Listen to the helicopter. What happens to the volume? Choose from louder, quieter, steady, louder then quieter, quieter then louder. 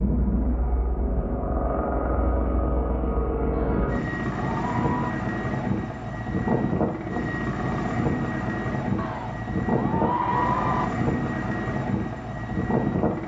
steady.